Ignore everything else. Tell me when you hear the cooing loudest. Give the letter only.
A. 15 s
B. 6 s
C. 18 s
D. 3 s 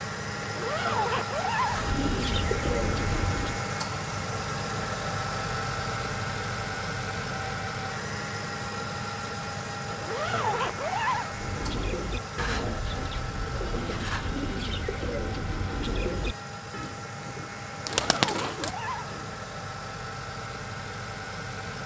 C.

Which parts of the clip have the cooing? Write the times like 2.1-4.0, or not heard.
1.6-3.6, 11.3-19.2.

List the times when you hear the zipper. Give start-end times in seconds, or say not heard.
0.4-1.9, 9.9-11.3, 17.9-19.2.